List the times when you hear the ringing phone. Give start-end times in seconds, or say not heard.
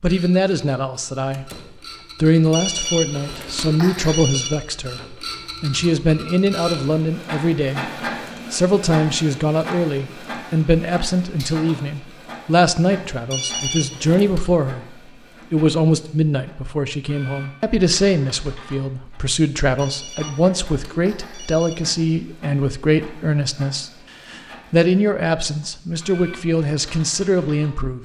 2.5-4.5, 13.3-14.4, 19.8-21.8.